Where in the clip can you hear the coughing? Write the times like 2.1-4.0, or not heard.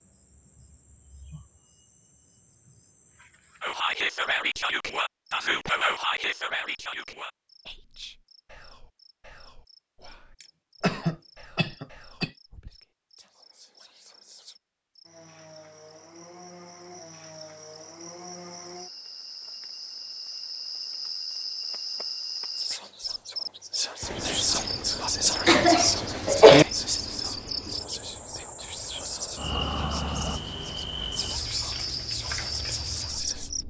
10.4-12.3, 25.4-26.6.